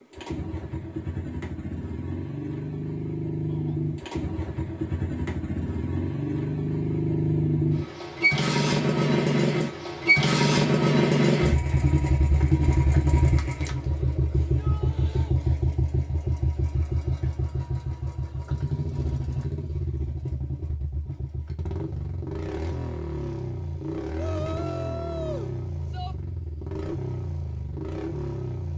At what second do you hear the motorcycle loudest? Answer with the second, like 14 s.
11 s.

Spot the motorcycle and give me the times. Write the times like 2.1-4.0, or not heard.
0.0-28.7.